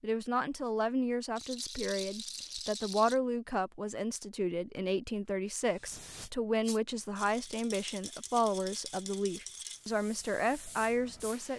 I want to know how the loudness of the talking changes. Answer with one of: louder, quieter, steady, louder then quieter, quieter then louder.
steady.